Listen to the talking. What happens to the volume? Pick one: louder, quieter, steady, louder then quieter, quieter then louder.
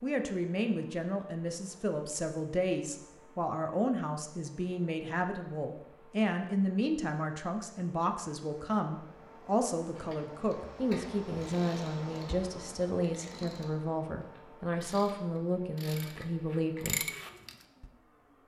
steady.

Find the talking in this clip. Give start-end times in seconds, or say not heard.
0.0-17.0.